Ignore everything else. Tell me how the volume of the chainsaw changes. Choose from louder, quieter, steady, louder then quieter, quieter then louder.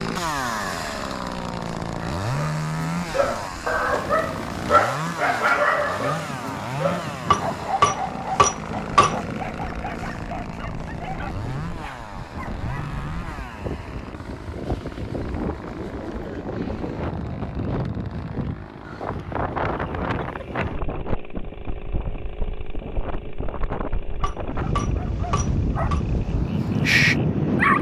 quieter.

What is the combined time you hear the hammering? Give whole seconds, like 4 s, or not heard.
4 s.